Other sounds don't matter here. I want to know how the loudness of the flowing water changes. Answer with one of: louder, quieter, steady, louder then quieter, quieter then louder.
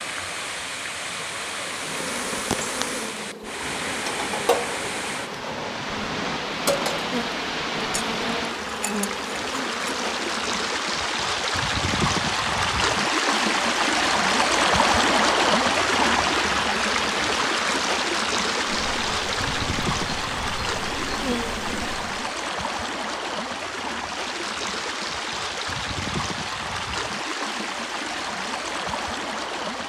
louder then quieter.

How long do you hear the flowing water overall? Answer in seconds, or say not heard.
30 s.